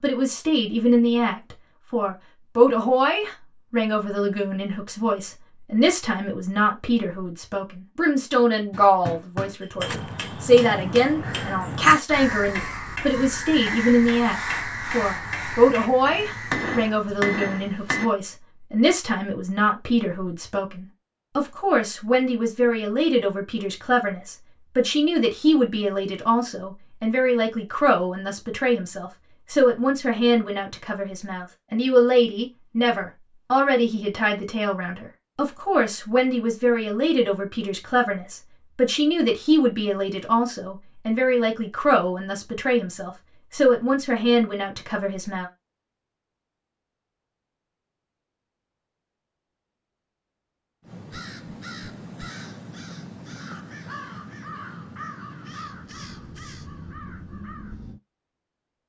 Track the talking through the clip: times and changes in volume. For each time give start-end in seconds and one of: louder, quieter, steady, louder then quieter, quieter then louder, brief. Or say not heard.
0.0-45.5 steady.